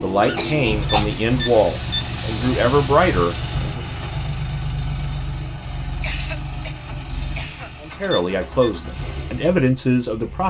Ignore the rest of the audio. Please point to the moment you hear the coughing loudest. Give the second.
1 s.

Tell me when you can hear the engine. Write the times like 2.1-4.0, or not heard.
0.0-10.4.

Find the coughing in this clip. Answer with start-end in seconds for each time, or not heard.
0.2-1.1, 6.0-7.7.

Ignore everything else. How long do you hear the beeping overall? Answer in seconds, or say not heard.
2 s.